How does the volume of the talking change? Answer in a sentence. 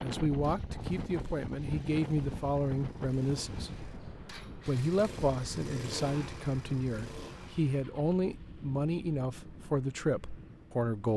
The volume of the talking stays about the same.